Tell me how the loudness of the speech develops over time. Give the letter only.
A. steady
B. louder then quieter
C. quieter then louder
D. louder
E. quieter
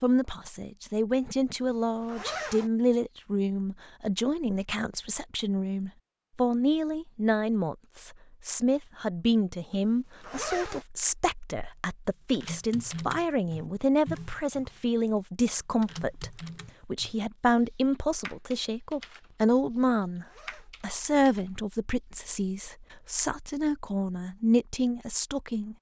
A.